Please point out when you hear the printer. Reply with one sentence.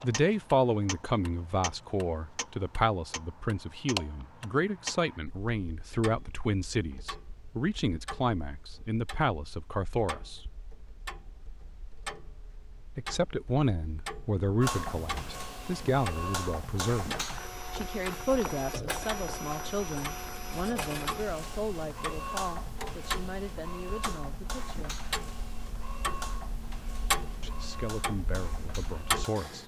The printer can be heard from 14.6 to 29.6 s.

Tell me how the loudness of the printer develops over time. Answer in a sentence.
The loudness of the printer goes down.